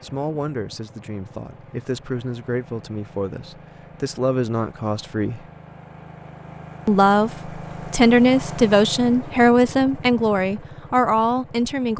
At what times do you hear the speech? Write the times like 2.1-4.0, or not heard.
0.0-5.5, 6.8-11.9.